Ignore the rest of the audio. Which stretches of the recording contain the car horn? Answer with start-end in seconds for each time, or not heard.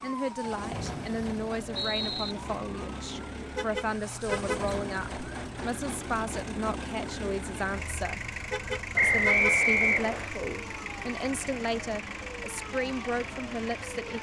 3.5-4.7, 8.5-9.6.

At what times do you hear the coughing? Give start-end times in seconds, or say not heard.
not heard.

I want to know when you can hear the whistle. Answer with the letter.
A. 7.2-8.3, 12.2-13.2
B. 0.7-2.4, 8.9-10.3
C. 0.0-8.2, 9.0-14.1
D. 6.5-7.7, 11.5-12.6
B.